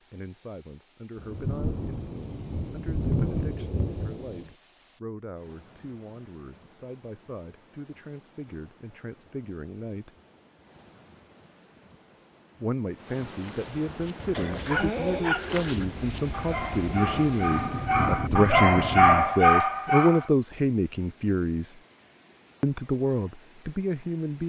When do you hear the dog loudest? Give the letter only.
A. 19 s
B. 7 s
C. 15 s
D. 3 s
A.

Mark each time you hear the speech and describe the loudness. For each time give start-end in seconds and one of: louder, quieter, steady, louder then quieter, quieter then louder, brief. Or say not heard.
0.1-10.1 steady
12.6-21.8 louder
22.6-24.4 brief.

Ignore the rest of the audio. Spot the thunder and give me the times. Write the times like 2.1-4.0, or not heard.
1.1-4.5, 15.7-19.4.